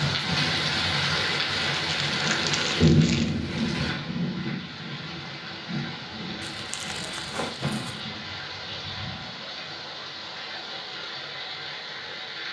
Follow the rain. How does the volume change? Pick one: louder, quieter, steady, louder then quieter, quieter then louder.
quieter.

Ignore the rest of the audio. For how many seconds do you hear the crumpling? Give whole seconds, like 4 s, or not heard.
3 s.